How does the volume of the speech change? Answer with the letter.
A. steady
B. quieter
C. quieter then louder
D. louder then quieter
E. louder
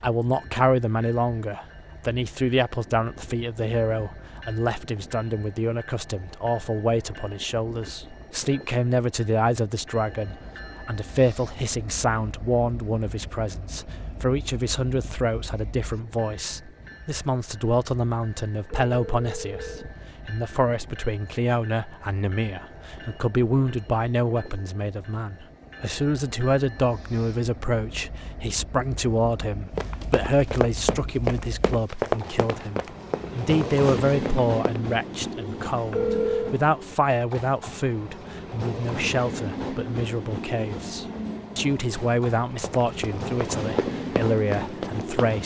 A.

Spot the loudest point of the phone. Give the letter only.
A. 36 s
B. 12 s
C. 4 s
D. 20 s
A.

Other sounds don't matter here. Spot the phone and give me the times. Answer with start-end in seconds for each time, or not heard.
18.6-19.9, 35.9-36.5.